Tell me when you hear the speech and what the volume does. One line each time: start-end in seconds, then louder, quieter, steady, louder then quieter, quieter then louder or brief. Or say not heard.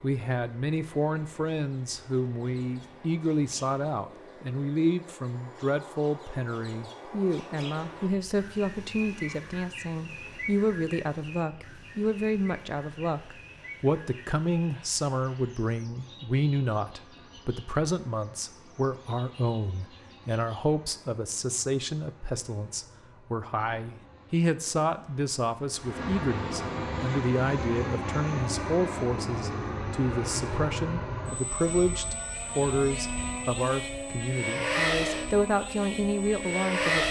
0.0-37.0 steady.